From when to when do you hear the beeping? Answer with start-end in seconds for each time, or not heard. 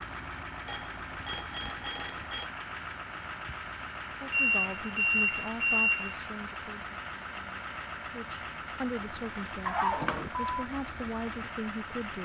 0.7-2.5, 4.3-6.2, 9.7-10.5.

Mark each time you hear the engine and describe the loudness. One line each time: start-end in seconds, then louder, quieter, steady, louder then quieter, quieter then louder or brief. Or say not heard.
0.0-12.2 steady.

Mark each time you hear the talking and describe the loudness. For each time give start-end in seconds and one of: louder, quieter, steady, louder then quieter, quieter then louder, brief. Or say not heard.
4.1-12.2 quieter then louder.